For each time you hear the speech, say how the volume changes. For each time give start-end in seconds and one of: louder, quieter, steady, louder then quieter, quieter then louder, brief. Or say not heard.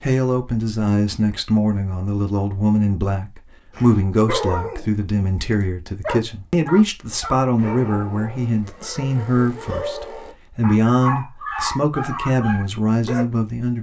0.0-13.7 steady.